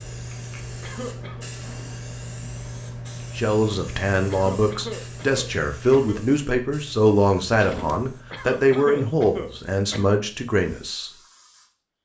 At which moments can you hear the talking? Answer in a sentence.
The talking can be heard from 3.4 to 11.1 s.